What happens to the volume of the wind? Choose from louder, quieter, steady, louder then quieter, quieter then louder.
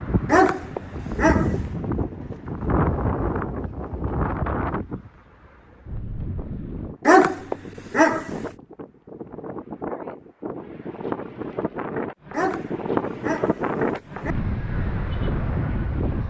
quieter then louder.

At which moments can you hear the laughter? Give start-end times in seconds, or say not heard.
not heard.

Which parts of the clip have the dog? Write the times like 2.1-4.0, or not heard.
0.2-1.6, 7.0-8.3, 12.3-14.3.